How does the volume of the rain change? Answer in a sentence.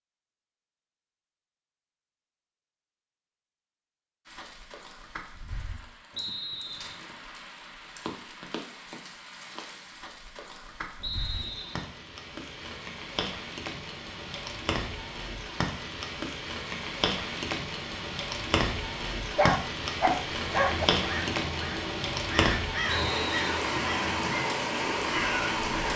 The loudness of the rain goes up.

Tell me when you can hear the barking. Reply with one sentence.
The barking can be heard from 19.4 to 20.9 s.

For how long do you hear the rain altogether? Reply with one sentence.
The rain can be heard for 22 seconds in total.